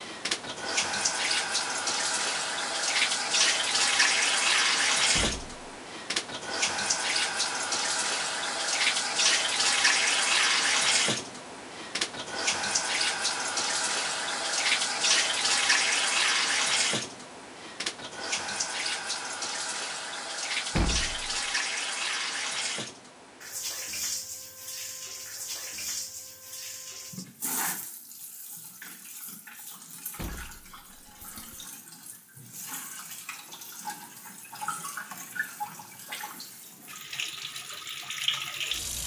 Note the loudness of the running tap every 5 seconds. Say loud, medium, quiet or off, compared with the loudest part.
loud, loud, loud, loud, medium, quiet, quiet, medium.